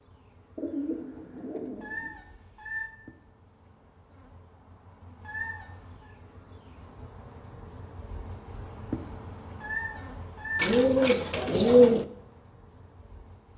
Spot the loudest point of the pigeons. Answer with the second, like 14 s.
12 s.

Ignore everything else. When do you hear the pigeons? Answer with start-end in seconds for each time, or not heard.
0.6-2.1, 10.6-12.1.